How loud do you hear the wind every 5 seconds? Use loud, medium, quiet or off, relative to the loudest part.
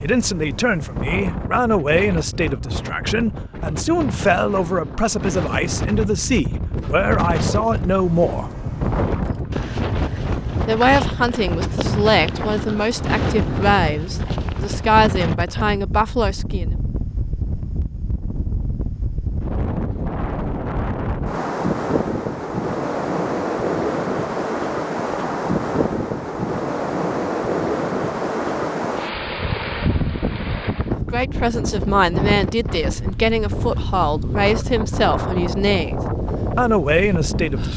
medium, loud, loud, medium, loud, loud, loud, loud.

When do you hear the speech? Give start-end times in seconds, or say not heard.
0.0-8.5, 10.7-16.6, 30.9-37.7.